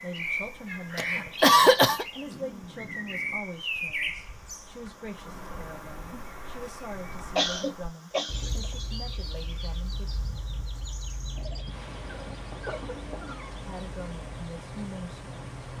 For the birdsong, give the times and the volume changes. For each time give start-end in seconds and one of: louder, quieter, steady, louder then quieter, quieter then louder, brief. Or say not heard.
0.0-15.7 quieter.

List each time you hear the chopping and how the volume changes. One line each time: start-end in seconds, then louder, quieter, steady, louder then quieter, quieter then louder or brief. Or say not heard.
not heard.